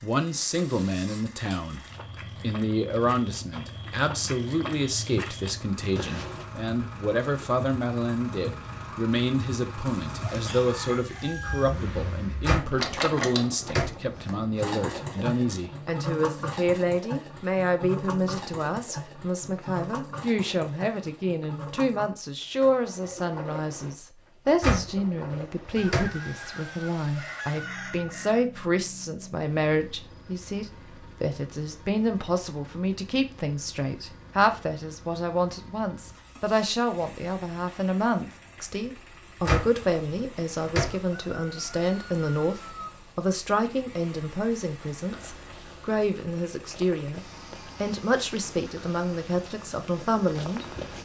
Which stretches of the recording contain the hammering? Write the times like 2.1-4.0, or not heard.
not heard.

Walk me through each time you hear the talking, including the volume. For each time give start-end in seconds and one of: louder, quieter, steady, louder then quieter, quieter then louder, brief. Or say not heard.
0.0-50.6 steady.